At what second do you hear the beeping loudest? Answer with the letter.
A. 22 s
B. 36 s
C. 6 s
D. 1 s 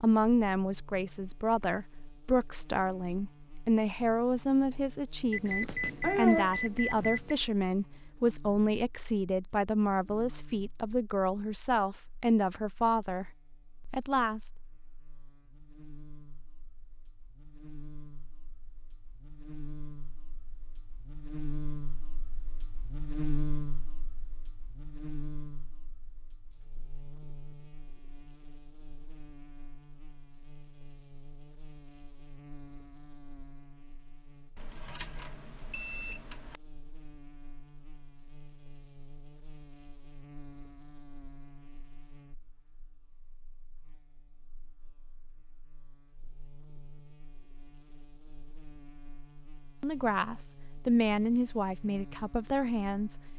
C.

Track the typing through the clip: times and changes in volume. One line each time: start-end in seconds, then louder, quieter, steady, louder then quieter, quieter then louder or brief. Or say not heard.
not heard.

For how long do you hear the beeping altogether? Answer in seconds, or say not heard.
4 s.